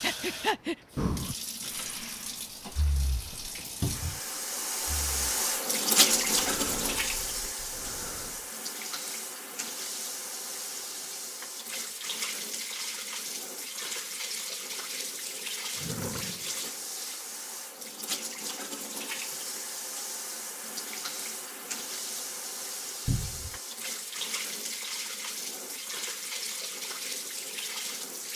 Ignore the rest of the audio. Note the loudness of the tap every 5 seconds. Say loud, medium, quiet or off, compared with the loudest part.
medium, loud, medium, medium, medium, medium.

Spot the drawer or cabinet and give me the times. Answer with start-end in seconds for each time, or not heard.
3.8-4.2, 15.8-16.5, 23.1-23.6.